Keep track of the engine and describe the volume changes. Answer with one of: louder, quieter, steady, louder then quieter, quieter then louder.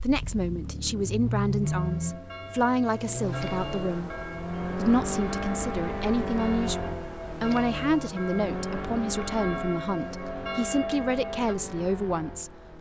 quieter.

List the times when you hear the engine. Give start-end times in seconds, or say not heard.
0.0-12.7.